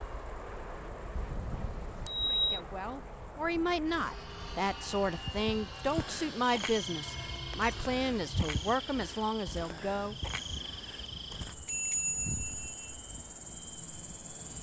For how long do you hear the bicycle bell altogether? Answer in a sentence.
The bicycle bell can be heard for 4 seconds in total.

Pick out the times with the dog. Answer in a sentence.
The dog can't be heard in this clip.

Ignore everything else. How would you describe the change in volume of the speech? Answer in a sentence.
The volume of the speech stays about the same.